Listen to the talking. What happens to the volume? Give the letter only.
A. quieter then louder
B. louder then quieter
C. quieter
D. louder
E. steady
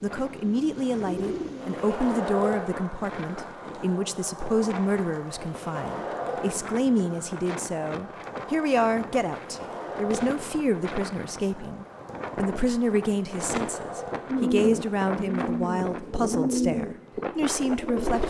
E.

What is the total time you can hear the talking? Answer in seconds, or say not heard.
18 s.